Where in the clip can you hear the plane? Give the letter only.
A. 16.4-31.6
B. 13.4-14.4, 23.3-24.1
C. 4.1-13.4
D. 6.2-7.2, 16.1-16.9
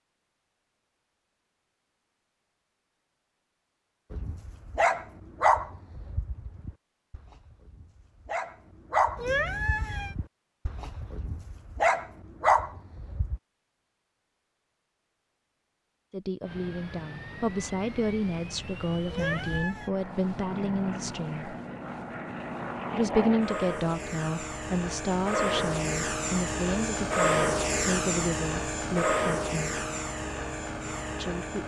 A.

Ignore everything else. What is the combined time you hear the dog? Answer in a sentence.
You can hear the dog for 9 seconds altogether.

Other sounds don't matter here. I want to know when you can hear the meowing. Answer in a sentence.
You can hear the meowing from 9.2 to 10.2 s and from 19.1 to 19.9 s.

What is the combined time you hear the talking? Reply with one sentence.
You can hear the talking for 13 seconds altogether.